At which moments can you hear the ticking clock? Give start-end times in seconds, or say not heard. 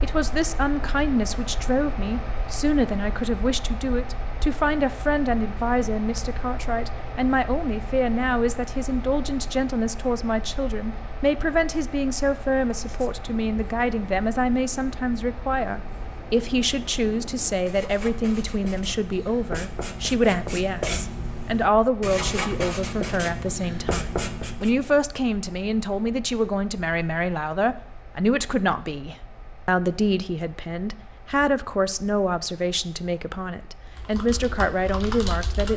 not heard.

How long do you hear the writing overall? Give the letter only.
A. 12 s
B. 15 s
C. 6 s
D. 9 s
A.